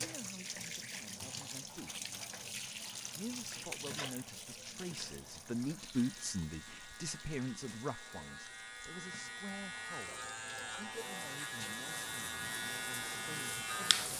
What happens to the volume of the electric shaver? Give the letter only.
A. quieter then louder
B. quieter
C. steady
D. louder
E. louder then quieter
D.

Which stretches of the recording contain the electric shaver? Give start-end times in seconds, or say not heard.
5.9-14.1.